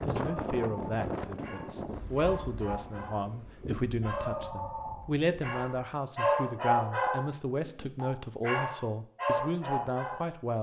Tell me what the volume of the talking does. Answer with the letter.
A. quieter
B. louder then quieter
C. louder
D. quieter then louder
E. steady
E.